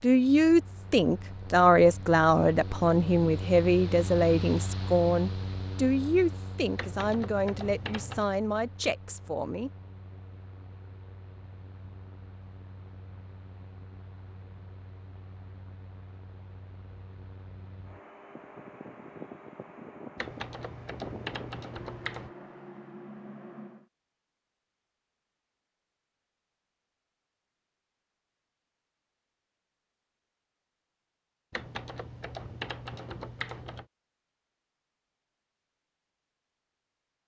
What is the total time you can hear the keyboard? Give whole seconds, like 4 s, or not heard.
6 s.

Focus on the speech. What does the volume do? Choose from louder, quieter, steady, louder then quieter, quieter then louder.
quieter.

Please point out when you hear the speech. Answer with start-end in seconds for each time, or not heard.
0.0-9.7.